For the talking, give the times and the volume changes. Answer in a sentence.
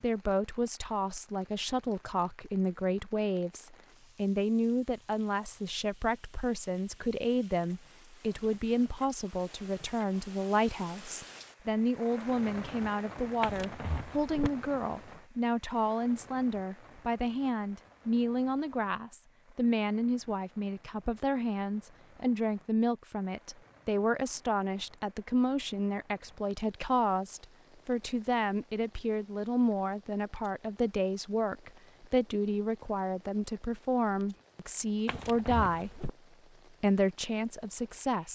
You can hear the talking from 0.0 to 35.9 s, at a steady volume; and briefly from 36.8 to 38.2 s.